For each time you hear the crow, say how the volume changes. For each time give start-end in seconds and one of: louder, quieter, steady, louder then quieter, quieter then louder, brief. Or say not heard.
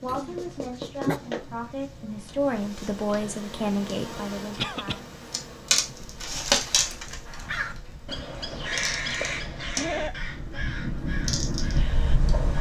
7.2-12.5 louder then quieter.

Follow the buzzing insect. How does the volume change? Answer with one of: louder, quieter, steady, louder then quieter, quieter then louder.
louder then quieter.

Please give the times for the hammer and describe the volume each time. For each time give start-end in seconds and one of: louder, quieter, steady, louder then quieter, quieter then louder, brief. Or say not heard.
not heard.